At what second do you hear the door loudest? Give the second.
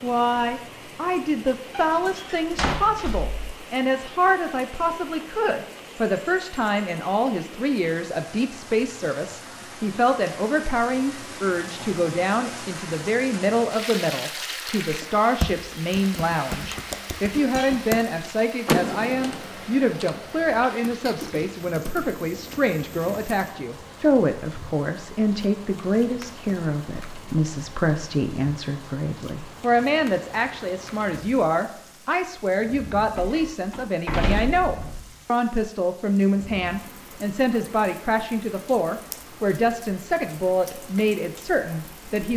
19 s.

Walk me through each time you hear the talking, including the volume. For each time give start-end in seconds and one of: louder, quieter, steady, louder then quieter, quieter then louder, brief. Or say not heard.
0.0-42.3 steady.